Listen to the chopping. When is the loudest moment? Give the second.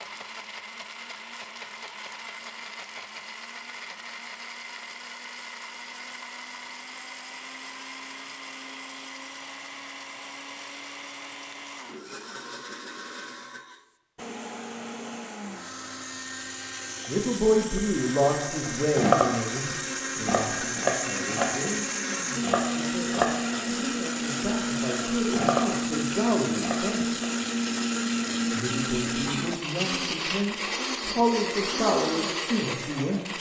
19 s.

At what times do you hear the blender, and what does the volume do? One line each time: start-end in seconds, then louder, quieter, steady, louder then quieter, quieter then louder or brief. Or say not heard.
0.0-33.3 louder.